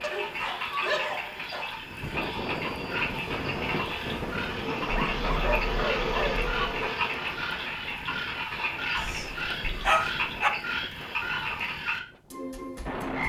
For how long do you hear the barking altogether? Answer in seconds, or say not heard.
5 s.